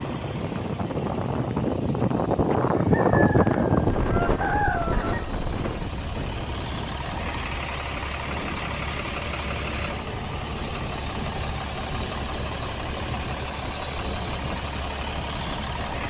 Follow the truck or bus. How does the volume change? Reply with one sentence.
The volume of the truck or bus goes up.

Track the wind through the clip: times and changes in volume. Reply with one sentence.
You can hear the wind from 0.0 to 16.0 s, getting quieter.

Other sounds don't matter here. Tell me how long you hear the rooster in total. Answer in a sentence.
The rooster can be heard for 3 seconds in total.